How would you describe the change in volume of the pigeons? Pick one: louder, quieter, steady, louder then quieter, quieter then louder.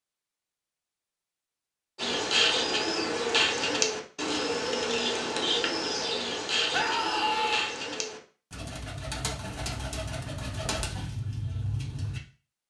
quieter.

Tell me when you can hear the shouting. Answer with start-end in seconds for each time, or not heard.
6.7-7.8.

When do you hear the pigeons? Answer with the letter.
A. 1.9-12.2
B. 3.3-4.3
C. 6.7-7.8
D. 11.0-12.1
A.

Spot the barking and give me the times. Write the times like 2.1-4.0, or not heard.
not heard.